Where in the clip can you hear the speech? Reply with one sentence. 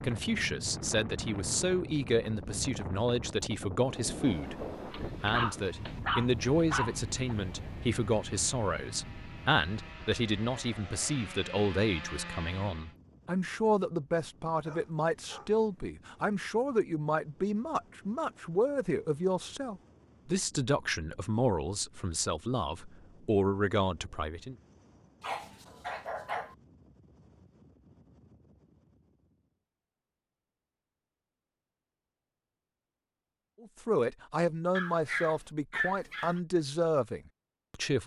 The speech can be heard from 0.0 to 24.6 s and from 33.6 to 38.0 s.